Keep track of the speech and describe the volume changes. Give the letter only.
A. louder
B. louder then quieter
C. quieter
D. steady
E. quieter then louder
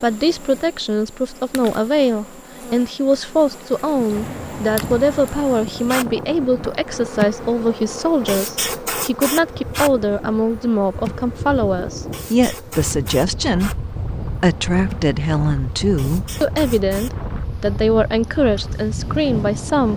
D.